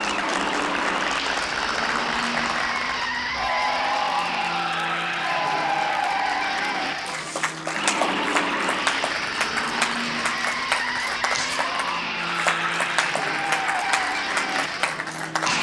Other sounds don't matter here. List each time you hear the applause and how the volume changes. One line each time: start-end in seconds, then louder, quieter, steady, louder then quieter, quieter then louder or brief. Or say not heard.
0.0-15.5 steady.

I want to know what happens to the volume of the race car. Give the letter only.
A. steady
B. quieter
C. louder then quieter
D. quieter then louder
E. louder
A.